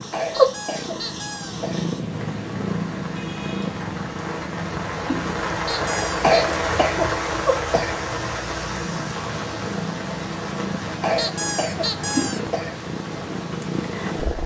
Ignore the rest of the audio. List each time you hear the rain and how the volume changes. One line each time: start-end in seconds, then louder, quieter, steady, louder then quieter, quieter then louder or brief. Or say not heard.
0.0-14.4 louder then quieter.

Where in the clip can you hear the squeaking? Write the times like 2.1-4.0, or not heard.
0.3-1.6, 5.7-6.6, 11.2-12.4.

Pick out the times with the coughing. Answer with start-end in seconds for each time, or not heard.
0.1-1.9, 6.2-8.0, 11.0-12.8.